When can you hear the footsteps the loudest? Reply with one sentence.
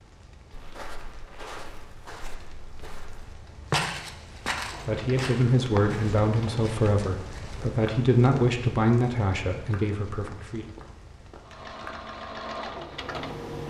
The loudest moment of the footsteps is at 4 seconds.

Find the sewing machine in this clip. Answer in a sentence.
You can hear the sewing machine from 4.5 to 6.7 s and from 11.4 to 13.6 s.